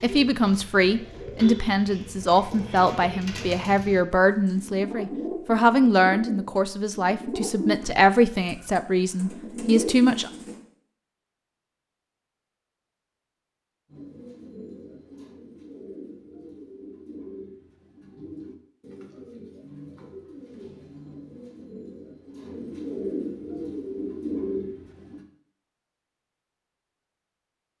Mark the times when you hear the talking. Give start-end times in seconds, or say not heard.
0.0-10.3.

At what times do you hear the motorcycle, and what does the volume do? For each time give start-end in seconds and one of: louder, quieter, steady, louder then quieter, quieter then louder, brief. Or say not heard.
not heard.